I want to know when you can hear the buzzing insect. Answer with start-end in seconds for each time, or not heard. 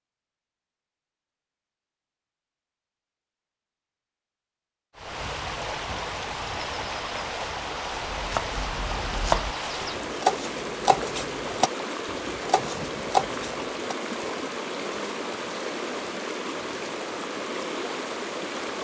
not heard.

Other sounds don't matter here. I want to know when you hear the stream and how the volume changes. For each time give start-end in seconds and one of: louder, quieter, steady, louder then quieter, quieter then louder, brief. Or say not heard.
5.0-18.7 steady.